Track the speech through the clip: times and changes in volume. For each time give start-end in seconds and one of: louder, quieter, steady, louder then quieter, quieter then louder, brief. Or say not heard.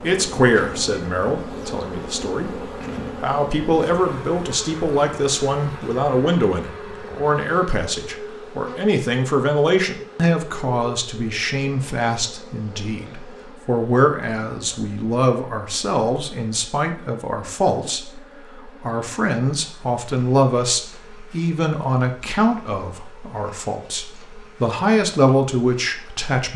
0.0-26.5 steady.